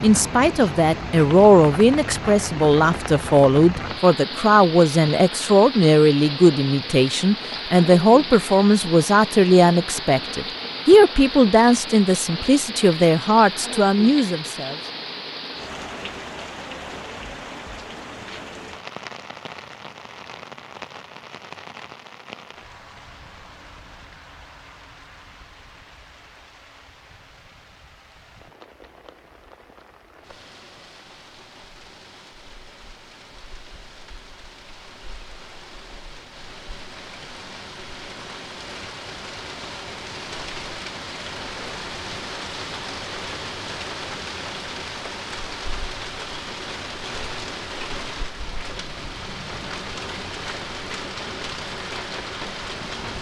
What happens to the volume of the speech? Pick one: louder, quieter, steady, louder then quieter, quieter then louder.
steady.